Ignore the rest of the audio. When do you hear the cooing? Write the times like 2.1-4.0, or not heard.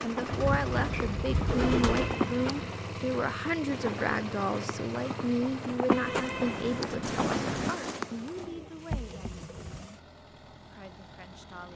0.3-2.2, 8.3-9.9.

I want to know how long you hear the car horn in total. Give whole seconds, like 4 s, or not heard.
3 s.